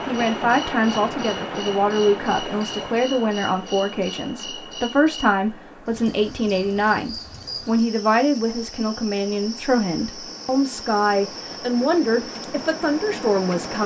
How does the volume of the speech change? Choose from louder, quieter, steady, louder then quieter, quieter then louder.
steady.